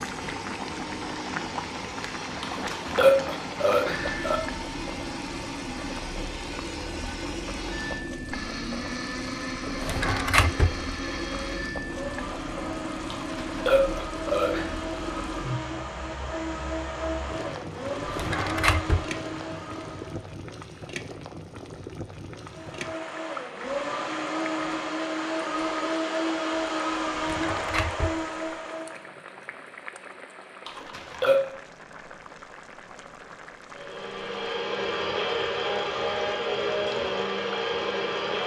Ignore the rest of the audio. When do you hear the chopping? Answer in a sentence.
The chopping can't be heard in this clip.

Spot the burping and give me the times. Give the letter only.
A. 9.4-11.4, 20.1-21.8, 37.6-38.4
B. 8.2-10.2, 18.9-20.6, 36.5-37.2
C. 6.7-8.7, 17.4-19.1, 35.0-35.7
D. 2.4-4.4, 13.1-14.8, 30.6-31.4
D.